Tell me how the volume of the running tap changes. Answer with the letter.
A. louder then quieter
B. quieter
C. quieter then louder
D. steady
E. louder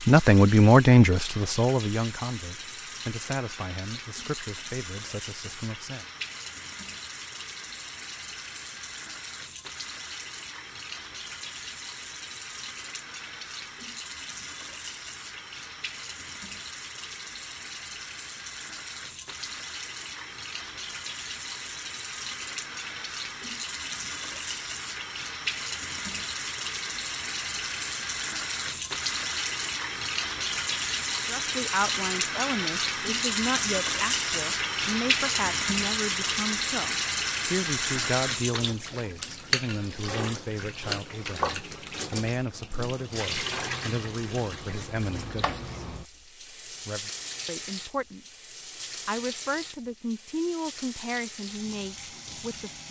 A.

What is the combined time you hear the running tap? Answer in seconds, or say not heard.
53 s.